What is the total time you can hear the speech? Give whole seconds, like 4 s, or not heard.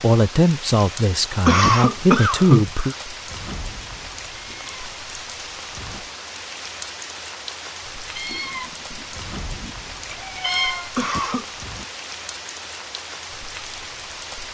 3 s.